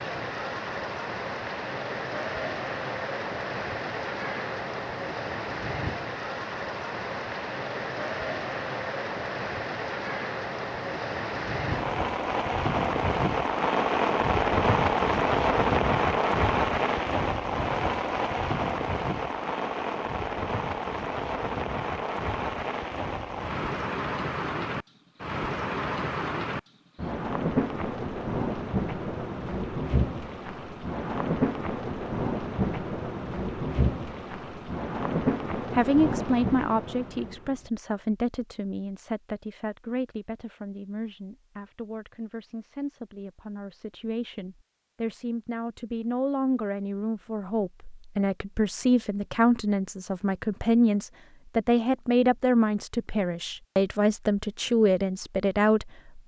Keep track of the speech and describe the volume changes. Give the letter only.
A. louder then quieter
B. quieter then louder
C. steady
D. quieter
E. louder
B.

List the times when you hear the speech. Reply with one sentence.
You can hear the speech from 35.7 to 56.2 s.